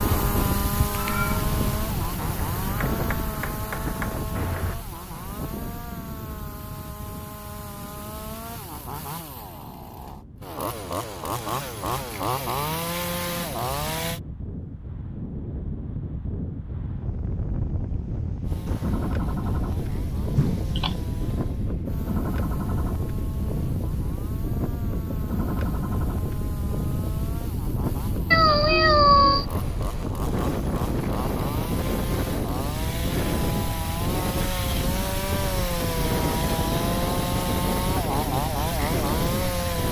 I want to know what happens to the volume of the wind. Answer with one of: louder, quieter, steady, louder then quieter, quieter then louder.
quieter then louder.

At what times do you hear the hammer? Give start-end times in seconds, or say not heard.
2.1-4.8.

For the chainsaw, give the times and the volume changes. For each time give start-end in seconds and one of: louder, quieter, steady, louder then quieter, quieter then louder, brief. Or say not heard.
0.0-14.2 quieter then louder
18.4-39.8 louder.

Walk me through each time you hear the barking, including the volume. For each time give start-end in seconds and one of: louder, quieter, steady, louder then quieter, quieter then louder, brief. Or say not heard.
not heard.